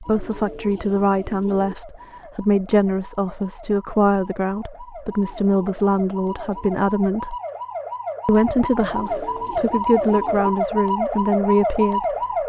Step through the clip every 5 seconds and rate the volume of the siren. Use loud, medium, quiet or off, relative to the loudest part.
quiet, medium, loud.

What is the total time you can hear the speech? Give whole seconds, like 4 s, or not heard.
11 s.